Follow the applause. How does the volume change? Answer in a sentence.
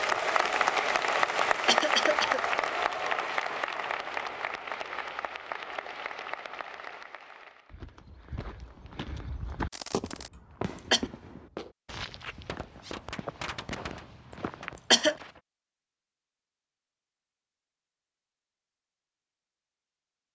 The loudness of the applause goes down.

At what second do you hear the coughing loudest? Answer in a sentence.
The volume of the coughing peaks at 15 seconds.